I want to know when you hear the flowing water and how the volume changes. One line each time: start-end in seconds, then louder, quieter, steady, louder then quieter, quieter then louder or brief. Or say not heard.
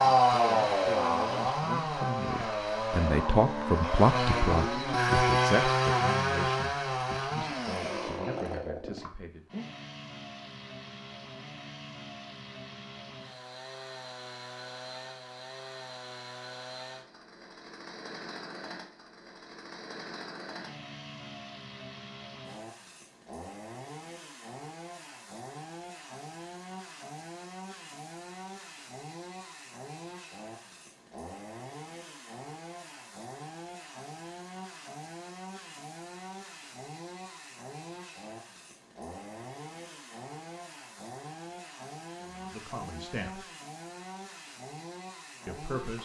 not heard.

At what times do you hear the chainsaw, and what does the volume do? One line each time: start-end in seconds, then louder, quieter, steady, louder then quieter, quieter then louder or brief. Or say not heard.
0.0-45.9 quieter.